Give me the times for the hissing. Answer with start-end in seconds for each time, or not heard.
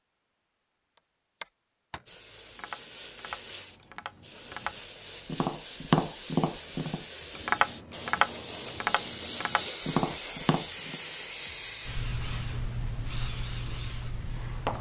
2.0-14.7.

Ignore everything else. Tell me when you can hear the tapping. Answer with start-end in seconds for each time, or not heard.
0.9-10.9.